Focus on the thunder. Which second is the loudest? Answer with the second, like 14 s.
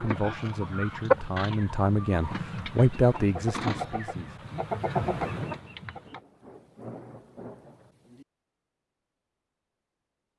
5 s.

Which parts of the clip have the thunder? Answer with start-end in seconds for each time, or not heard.
4.9-8.2.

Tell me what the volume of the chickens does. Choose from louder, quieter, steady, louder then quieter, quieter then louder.
quieter then louder.